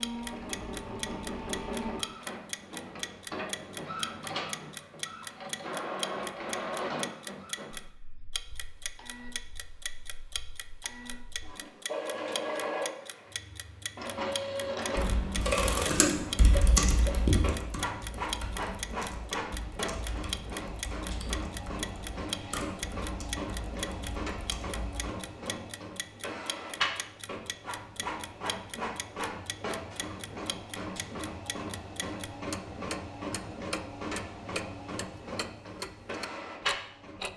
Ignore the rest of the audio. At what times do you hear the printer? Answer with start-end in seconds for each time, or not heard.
0.0-37.3.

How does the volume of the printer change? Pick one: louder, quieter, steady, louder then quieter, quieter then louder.
steady.